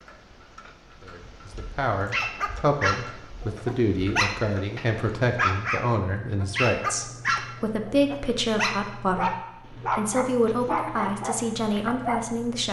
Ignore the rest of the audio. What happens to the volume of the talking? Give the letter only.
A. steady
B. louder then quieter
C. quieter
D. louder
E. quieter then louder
A.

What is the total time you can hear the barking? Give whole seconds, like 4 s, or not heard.
10 s.